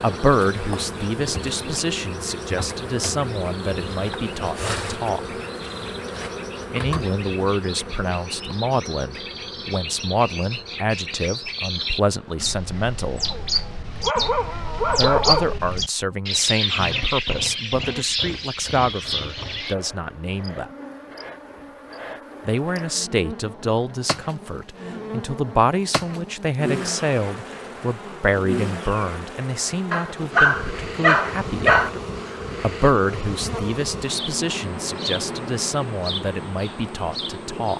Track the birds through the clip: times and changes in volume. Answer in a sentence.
The birds can be heard from 0.0 to 19.8 s, getting louder.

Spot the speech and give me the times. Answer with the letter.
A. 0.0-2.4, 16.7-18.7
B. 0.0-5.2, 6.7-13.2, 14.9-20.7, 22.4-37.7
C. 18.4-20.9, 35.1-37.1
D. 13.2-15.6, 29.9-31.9
B.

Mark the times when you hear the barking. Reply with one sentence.
The barking can be heard from 13.2 to 15.6 s and from 29.9 to 31.9 s.